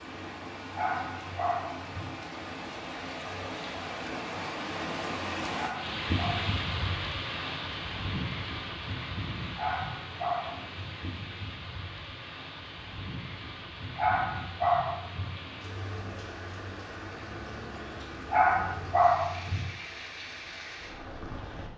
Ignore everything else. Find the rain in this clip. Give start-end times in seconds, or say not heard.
0.0-21.7.